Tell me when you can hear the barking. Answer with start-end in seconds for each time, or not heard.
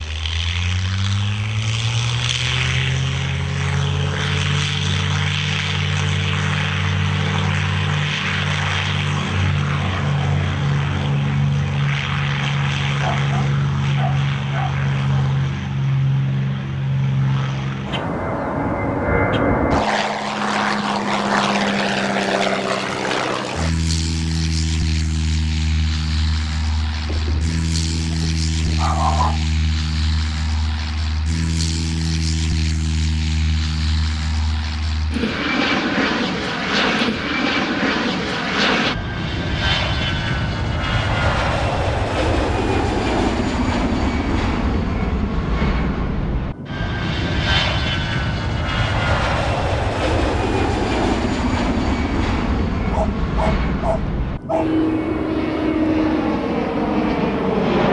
13.0-14.8, 27.1-29.4, 52.9-54.6.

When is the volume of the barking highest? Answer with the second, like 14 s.
29 s.